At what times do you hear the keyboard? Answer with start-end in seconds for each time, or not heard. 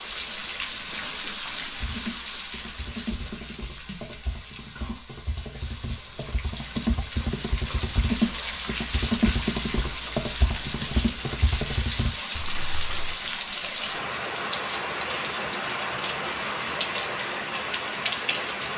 1.8-13.2.